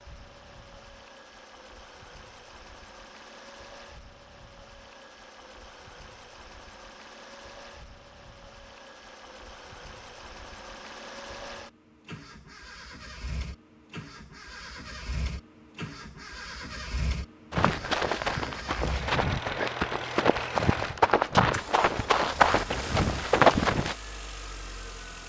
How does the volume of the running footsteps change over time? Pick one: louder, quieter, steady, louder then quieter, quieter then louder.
louder.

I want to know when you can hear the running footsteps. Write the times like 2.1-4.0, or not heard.
17.5-23.9.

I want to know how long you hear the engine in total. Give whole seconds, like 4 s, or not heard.
25 s.